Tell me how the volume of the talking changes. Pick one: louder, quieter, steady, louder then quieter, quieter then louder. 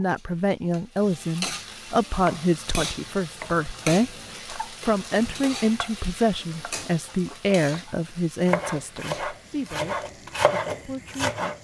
quieter.